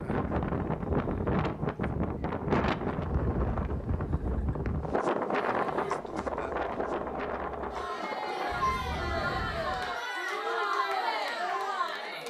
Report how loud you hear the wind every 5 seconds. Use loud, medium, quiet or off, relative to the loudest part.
loud, loud, off.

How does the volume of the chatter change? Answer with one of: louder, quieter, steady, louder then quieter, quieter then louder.
louder.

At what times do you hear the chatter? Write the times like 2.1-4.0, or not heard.
5.2-12.2.